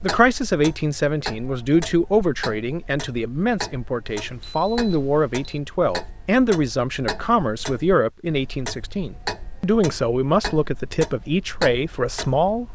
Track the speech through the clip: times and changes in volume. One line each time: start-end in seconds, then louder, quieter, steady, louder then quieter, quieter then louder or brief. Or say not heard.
0.0-12.7 steady.